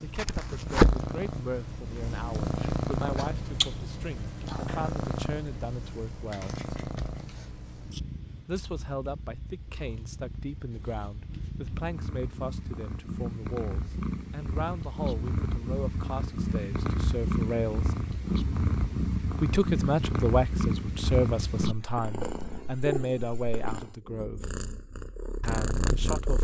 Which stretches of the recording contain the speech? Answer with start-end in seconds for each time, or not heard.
0.0-6.6, 8.4-17.9, 19.4-24.5, 25.4-26.3.